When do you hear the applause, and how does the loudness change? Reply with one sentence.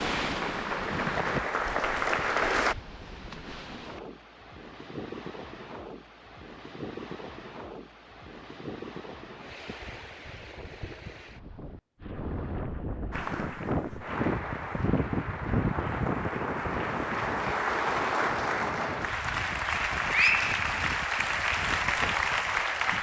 You can hear the applause briefly from 0.2 to 2.8 s; and from 13.1 to 22.9 s, getting louder.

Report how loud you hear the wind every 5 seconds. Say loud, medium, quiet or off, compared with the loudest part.
loud, medium, loud, loud, medium.